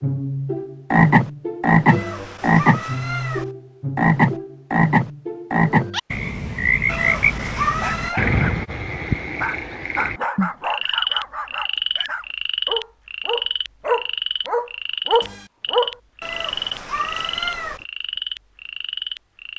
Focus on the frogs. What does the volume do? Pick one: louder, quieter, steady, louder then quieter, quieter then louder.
quieter.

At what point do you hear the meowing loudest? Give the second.
8 s.